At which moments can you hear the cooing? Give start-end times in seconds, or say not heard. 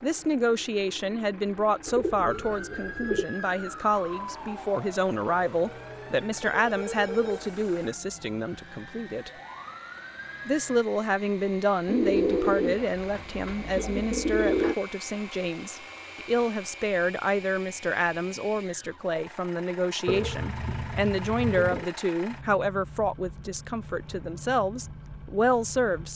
1.9-3.2, 11.8-14.8, 20.1-21.9.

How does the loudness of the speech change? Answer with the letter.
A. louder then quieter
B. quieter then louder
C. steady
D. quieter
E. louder
C.